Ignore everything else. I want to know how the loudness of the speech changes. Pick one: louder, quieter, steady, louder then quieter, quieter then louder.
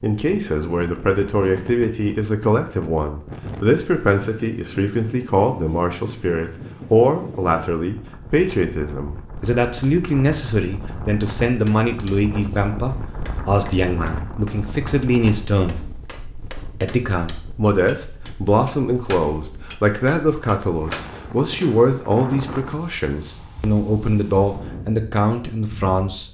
steady.